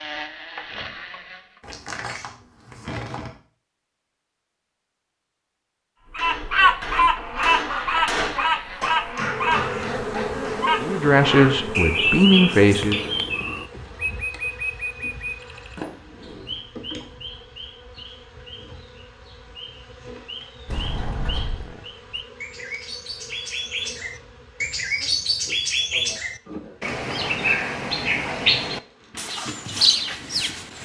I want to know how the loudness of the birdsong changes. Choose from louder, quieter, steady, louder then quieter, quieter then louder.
quieter then louder.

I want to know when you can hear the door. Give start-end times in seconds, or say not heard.
1.6-3.4, 15.8-16.6, 20.6-21.8.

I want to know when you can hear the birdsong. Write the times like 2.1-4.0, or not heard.
6.1-30.8.